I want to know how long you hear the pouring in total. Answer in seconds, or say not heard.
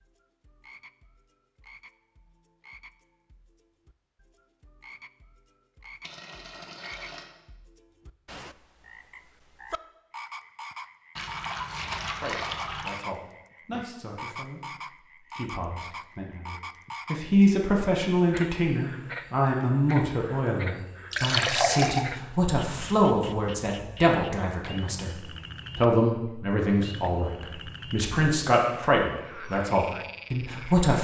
4 s.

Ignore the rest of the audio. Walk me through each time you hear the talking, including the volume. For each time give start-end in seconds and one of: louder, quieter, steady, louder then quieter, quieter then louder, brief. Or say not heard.
12.2-30.9 louder.